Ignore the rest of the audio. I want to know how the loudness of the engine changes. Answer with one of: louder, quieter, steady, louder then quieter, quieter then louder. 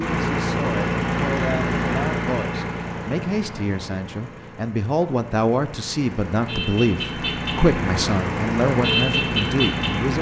quieter then louder.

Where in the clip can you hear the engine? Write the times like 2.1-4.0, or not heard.
0.0-10.1.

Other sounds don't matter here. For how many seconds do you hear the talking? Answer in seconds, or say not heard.
10 s.